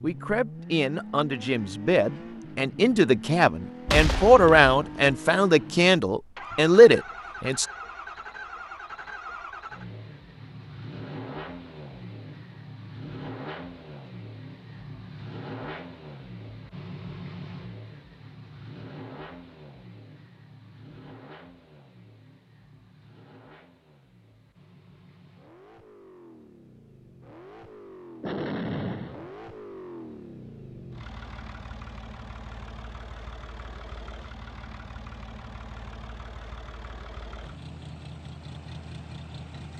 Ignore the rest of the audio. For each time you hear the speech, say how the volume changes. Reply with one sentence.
The speech can be heard from 0.0 to 7.7 s, getting louder.